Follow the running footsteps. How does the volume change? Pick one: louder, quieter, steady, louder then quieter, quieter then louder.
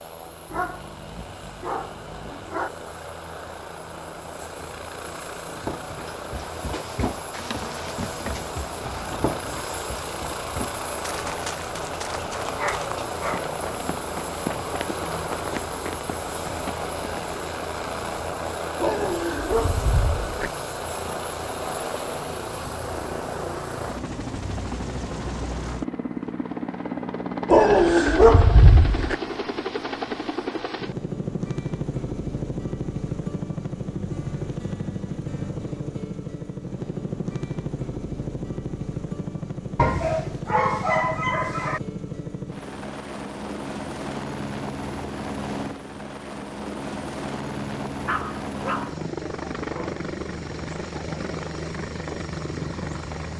steady.